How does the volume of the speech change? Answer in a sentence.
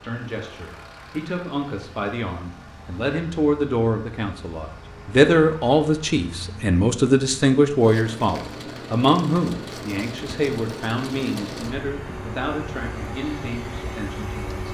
The volume of the speech goes up, then down.